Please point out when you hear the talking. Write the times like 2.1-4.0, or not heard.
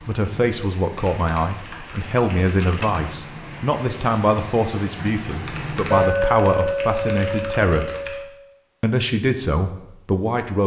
0.1-7.9, 8.8-10.6.